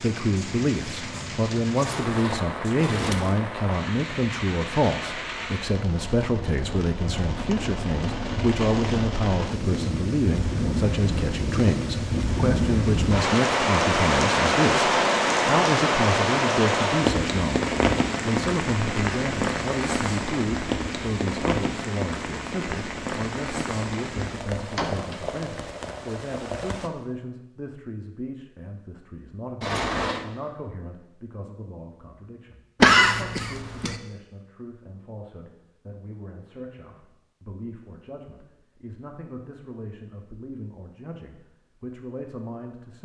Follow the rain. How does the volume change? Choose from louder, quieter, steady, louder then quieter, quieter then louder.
louder then quieter.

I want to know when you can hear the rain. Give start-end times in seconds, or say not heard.
0.0-26.9.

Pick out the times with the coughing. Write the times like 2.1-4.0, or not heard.
32.8-34.0.